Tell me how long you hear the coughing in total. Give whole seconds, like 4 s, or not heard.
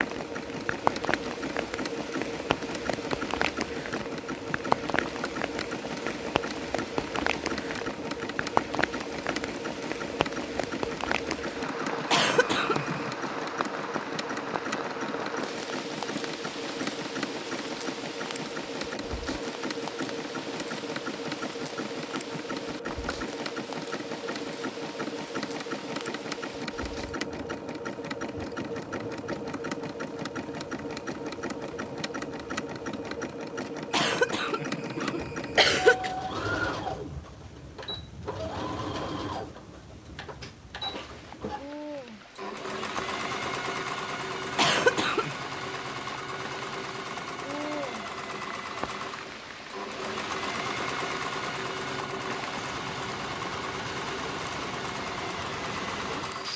4 s.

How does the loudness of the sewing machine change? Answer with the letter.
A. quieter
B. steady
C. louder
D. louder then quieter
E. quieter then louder
B.